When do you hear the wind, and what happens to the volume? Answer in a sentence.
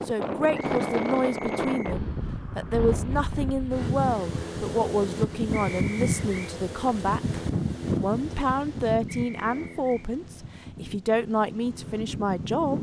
The wind can be heard from 0.0 to 12.7 s, getting quieter.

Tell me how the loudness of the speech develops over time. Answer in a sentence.
The volume of the speech stays about the same.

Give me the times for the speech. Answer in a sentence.
The speech can be heard from 0.1 to 12.7 s.